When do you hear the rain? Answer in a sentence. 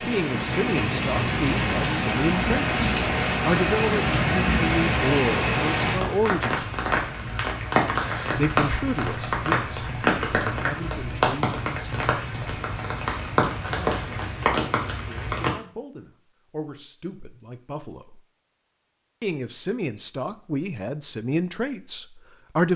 The rain can be heard from 0.0 to 15.5 s.